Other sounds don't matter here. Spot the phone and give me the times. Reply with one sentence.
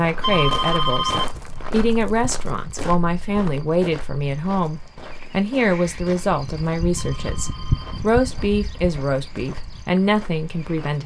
The phone can be heard from 0.2 to 1.3 s and from 7.0 to 8.0 s.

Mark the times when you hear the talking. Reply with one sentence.
The talking can be heard from 0.0 to 11.0 s.